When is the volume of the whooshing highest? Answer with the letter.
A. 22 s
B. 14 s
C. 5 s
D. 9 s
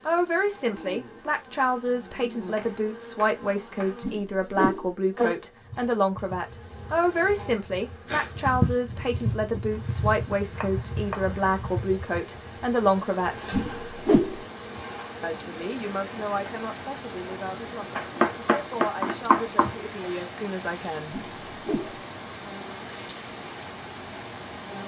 B.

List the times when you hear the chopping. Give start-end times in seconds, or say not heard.
2.5-4.0, 10.5-11.3, 17.9-19.8.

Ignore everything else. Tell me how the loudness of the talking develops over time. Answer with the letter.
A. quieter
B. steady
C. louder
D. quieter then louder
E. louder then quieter
A.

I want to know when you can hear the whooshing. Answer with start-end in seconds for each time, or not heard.
4.0-4.9, 13.5-14.4, 21.1-22.0.